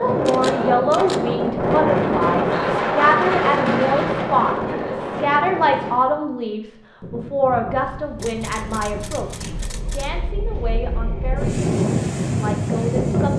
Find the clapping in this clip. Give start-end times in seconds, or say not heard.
not heard.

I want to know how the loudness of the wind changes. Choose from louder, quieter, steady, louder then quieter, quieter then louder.
quieter then louder.